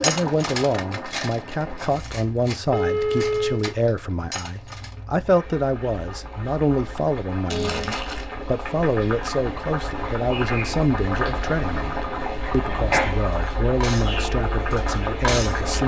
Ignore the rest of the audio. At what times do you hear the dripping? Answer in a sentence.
The dripping can't be heard in this clip.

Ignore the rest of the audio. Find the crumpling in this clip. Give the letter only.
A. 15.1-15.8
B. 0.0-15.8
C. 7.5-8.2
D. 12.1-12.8
C.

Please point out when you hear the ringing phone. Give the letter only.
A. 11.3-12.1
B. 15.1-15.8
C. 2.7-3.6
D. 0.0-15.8
C.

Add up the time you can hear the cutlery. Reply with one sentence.
You can hear the cutlery for 7 seconds altogether.